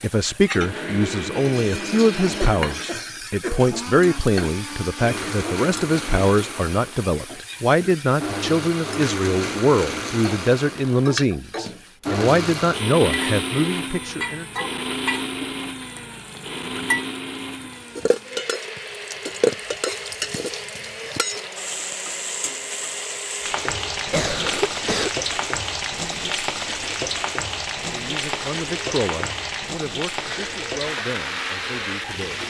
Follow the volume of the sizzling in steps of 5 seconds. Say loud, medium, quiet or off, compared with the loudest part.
medium, medium, medium, loud, loud, loud, loud.